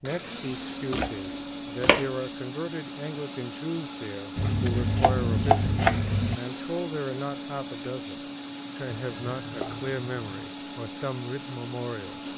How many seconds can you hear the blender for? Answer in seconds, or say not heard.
12 s.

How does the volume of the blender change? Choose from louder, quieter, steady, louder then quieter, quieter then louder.
steady.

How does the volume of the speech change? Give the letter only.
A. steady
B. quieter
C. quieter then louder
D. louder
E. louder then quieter
A.